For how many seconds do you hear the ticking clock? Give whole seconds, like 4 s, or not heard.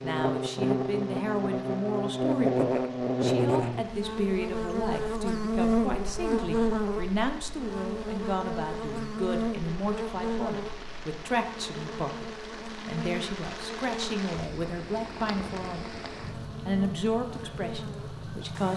not heard.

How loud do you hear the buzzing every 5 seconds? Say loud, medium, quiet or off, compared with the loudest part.
loud, loud, medium, quiet.